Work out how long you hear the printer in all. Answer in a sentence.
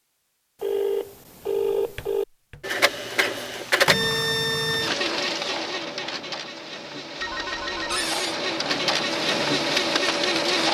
The printer can be heard for 8 seconds in total.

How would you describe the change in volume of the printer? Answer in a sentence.
The volume of the printer goes down, then up.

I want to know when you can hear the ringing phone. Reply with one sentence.
You can hear the ringing phone from 0.6 to 2.2 s and from 7.2 to 8.1 s.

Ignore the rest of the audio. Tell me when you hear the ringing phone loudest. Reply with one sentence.
The loudest moment of the ringing phone is at 2 seconds.